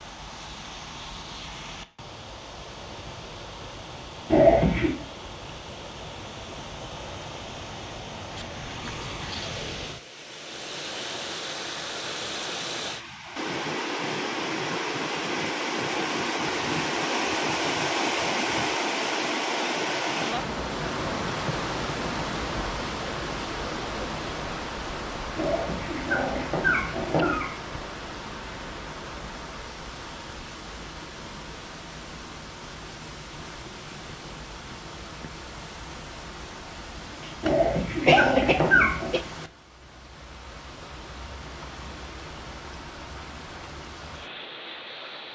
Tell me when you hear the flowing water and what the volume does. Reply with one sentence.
You can hear the flowing water from 0.0 to 45.3 s, getting louder then quieter.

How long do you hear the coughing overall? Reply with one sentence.
You can hear the coughing for 2 seconds altogether.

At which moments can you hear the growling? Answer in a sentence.
The growling can be heard from 4.2 to 4.9 s, from 25.4 to 27.5 s and from 37.4 to 39.1 s.